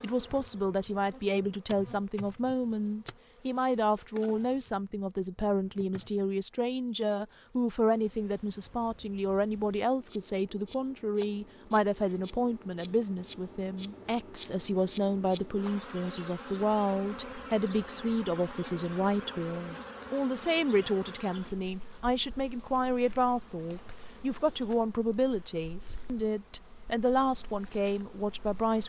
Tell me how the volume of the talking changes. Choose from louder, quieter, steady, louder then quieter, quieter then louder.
steady.